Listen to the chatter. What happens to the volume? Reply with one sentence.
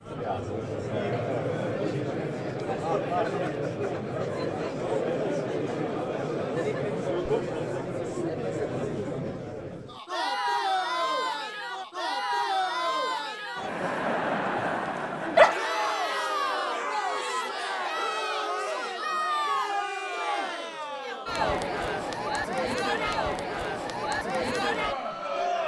The loudness of the chatter stays about the same.